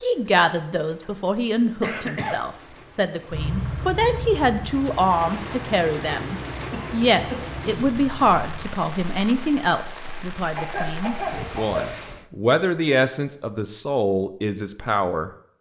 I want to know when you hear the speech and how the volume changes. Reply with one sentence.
The speech can be heard from 0.0 to 15.3 s, at a steady volume.